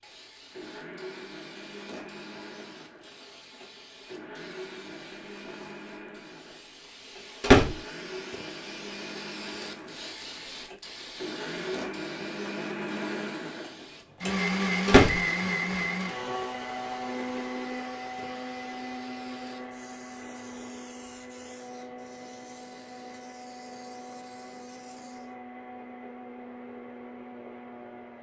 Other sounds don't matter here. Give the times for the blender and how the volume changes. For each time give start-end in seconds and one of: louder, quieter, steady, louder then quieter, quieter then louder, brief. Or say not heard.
0.0-28.1 louder then quieter.